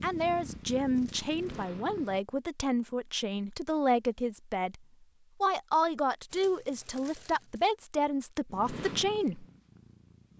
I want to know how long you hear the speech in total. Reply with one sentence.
You can hear the speech for 9 seconds altogether.